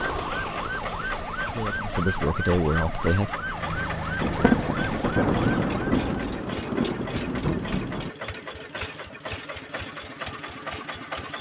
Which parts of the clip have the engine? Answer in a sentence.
The engine can be heard from 0.0 to 11.3 s.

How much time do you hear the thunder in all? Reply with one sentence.
You can hear the thunder for 4 seconds altogether.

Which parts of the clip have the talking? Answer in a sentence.
You can hear the talking from 1.6 to 3.3 s.